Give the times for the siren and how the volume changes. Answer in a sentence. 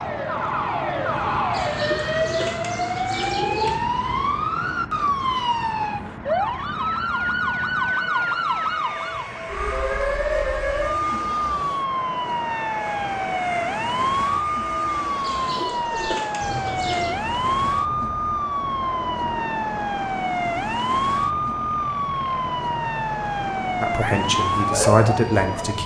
You can hear the siren from 0.0 to 25.8 s, at a steady volume.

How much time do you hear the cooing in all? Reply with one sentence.
The cooing can be heard for 4 seconds in total.